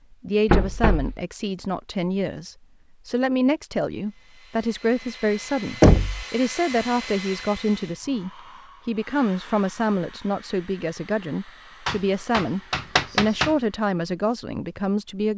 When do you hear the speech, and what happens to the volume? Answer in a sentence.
The speech can be heard from 0.1 to 15.3 s, at a steady volume.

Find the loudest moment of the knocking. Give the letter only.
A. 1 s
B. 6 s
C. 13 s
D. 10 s
B.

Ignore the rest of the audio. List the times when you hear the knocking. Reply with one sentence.
You can hear the knocking from 0.5 to 1.1 s, from 5.8 to 6.2 s and from 11.8 to 13.6 s.